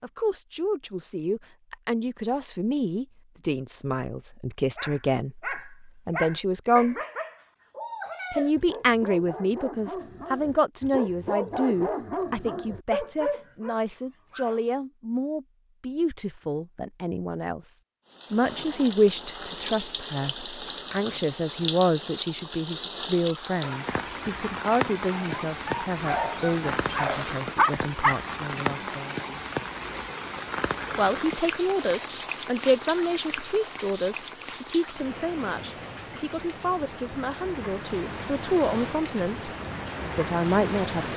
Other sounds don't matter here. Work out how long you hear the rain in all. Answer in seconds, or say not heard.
23 s.